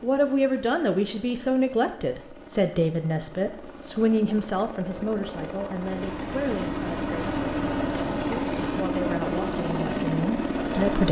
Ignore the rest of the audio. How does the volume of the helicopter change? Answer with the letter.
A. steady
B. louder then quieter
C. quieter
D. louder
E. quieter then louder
D.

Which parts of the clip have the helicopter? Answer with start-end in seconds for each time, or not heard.
0.0-11.0.